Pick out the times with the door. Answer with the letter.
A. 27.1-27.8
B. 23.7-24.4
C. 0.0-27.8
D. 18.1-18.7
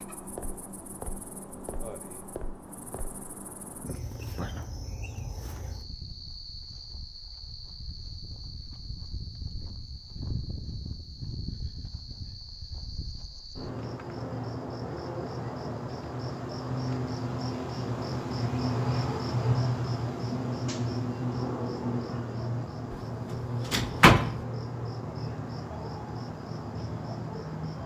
B.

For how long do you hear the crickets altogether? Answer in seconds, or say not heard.
28 s.